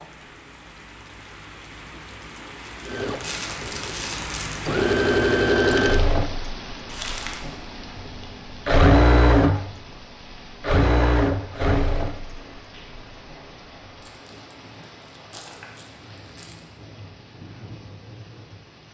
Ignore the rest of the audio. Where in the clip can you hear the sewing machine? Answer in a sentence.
You can hear the sewing machine from 2.9 to 14.1 s.